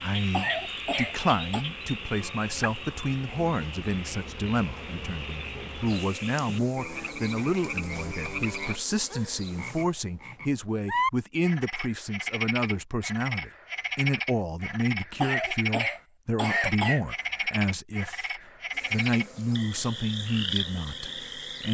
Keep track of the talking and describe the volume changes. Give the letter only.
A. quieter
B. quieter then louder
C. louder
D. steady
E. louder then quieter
D.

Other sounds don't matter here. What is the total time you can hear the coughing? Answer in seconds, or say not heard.
3 s.